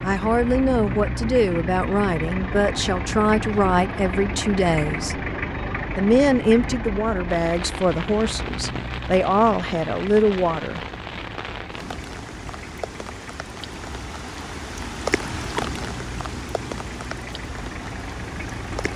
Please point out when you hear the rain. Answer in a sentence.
You can hear the rain from 7.2 to 18.9 s.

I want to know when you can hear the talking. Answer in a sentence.
The talking can be heard from 0.0 to 5.2 s and from 6.0 to 10.8 s.